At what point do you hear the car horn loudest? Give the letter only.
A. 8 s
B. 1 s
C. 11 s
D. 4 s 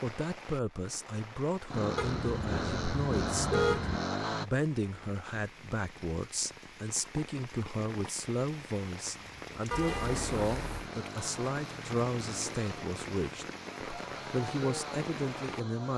D.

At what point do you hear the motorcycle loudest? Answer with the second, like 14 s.
4 s.